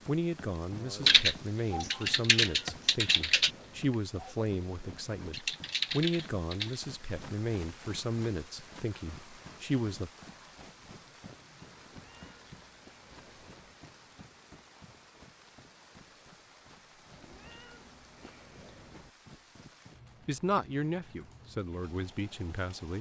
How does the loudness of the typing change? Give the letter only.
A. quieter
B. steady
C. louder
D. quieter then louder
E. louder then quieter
D.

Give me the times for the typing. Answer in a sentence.
You can hear the typing from 1.1 to 6.8 s.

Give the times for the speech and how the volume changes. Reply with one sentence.
The speech can be heard from 0.1 to 10.1 s, at a steady volume; and briefly from 20.2 to 22.9 s.